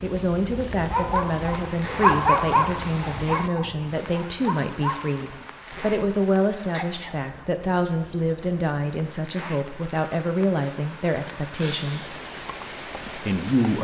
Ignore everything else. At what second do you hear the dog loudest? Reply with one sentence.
The volume of the dog peaks at 2 seconds.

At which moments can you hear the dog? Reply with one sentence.
You can hear the dog from 0.6 to 6.0 s.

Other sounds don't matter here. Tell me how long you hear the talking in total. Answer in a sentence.
The talking can be heard for 13 seconds in total.